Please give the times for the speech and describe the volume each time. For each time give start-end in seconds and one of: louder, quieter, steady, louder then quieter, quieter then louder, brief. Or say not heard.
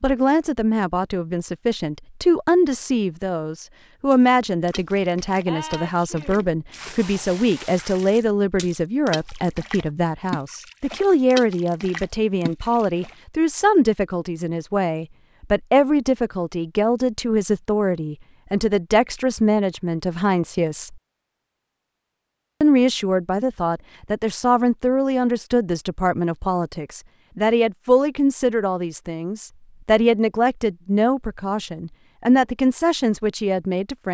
0.0-20.9 steady
22.6-34.0 steady.